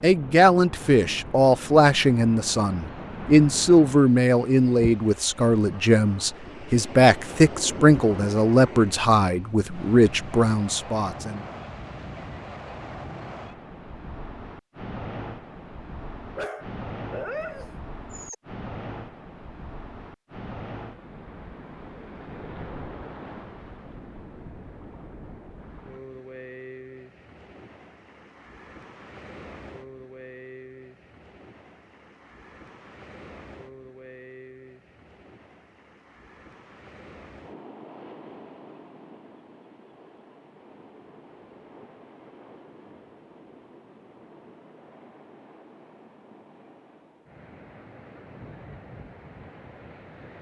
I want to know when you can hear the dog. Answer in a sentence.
The dog can be heard from 16.4 to 18.4 s.